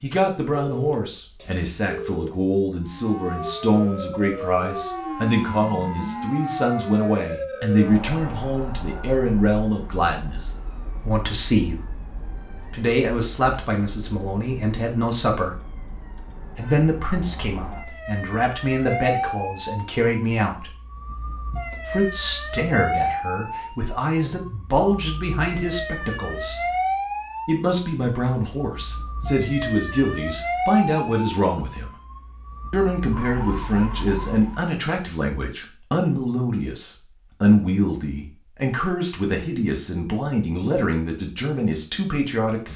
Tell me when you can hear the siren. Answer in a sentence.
You can hear the siren from 2.9 to 34.7 s.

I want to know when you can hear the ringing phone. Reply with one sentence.
You can hear the ringing phone from 0.5 to 2.4 s.